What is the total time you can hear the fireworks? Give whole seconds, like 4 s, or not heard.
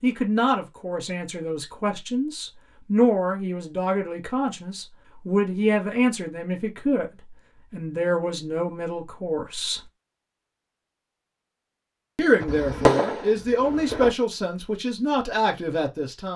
2 s.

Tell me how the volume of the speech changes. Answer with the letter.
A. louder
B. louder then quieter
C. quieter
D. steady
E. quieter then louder
D.